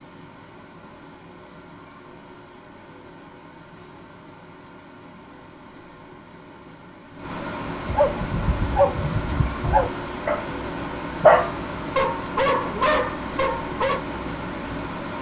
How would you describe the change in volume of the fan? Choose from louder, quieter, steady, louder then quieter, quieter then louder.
louder.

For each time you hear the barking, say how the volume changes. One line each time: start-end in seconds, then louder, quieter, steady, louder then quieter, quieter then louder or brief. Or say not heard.
7.5-14.0 louder then quieter.